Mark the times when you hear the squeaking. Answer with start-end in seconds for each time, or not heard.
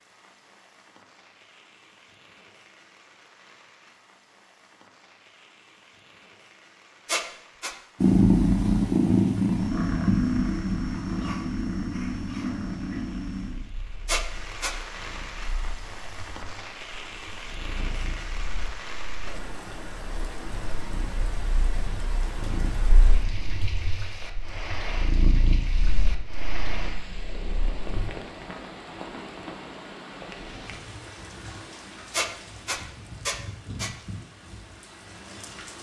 7.0-7.8, 14.1-14.8, 32.1-33.9.